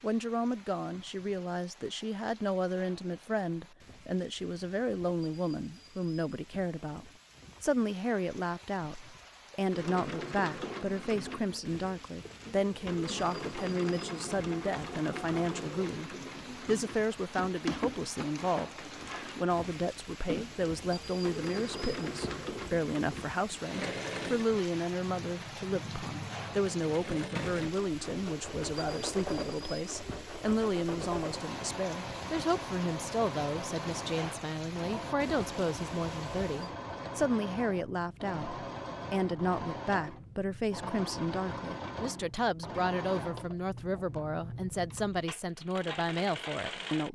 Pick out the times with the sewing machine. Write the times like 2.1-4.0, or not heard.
9.7-47.1.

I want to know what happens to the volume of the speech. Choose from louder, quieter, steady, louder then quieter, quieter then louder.
steady.